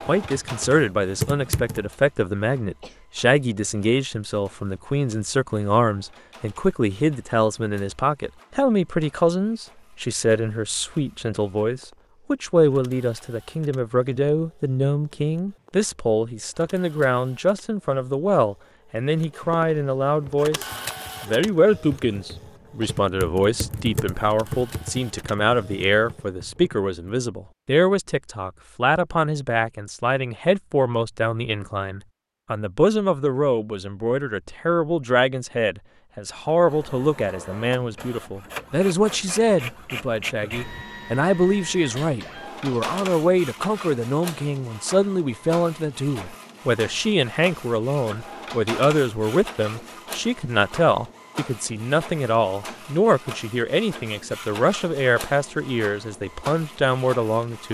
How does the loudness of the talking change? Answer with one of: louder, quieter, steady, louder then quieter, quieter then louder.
steady.